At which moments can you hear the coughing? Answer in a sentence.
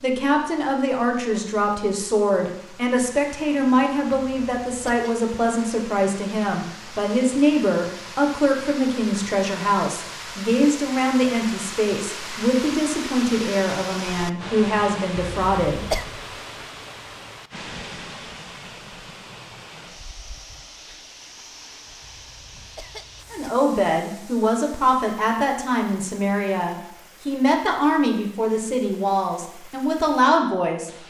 You can hear the coughing from 4.1 to 5.1 s, from 15.2 to 16.1 s and from 22.0 to 23.5 s.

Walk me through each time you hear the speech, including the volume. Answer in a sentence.
The speech can be heard from 0.0 to 15.8 s, at a steady volume; and from 23.3 to 31.0 s, at a steady volume.